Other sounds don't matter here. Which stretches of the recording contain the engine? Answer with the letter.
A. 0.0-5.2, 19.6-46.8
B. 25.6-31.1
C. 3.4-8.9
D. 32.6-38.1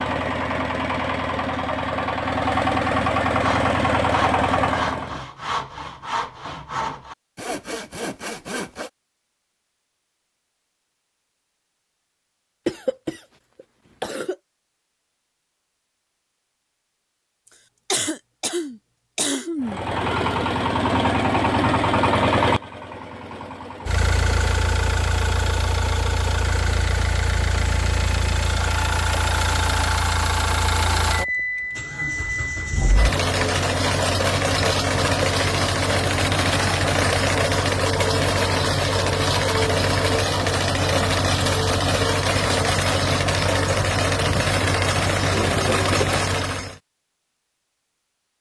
A.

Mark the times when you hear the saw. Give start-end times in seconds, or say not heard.
3.4-8.9.